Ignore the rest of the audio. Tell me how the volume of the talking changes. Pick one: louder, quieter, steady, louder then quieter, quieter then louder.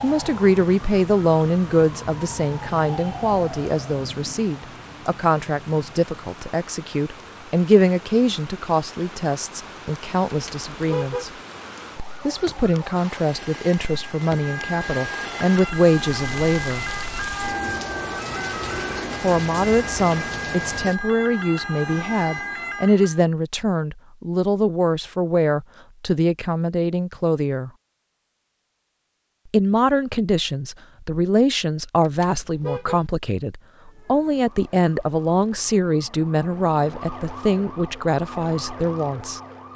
steady.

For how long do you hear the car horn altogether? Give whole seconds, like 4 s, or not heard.
2 s.